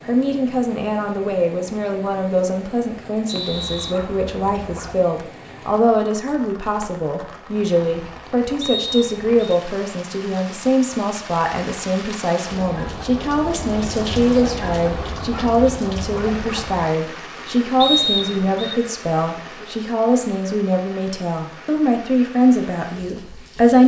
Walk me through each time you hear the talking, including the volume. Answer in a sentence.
You can hear the talking from 0.1 to 23.8 s, at a steady volume.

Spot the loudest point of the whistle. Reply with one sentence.
The volume of the whistle peaks at 18 seconds.